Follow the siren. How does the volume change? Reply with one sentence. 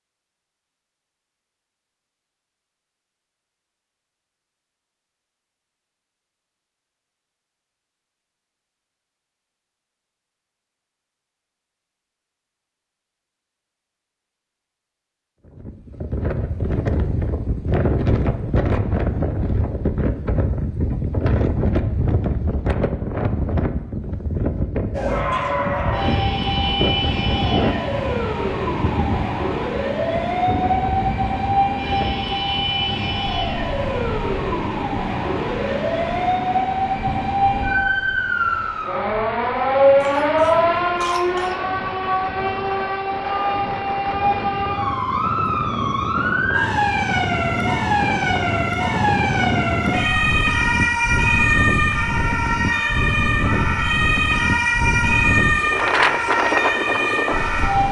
The volume of the siren stays about the same.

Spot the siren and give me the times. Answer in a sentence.
The siren can be heard from 24.9 to 57.8 s.